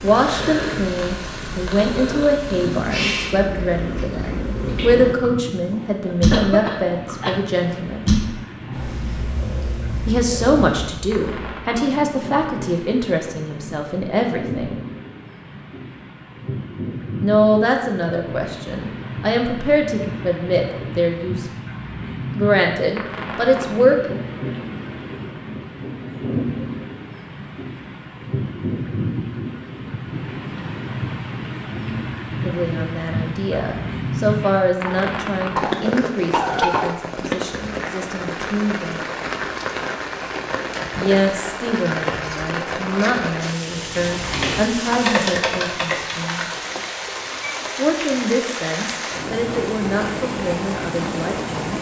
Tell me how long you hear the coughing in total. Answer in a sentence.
The coughing can be heard for 3 seconds in total.